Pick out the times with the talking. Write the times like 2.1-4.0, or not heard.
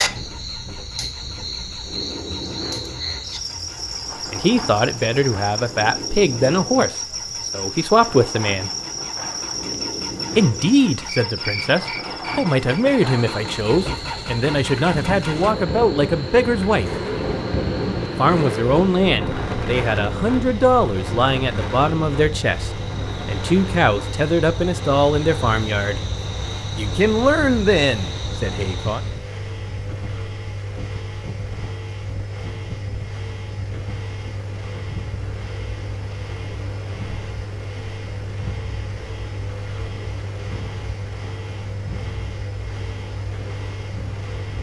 4.3-8.7, 10.3-16.9, 18.1-26.0, 26.8-29.0.